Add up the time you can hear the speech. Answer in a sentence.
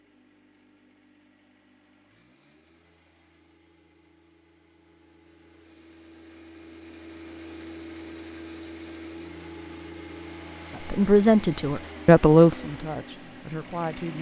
You can hear the speech for 3 seconds altogether.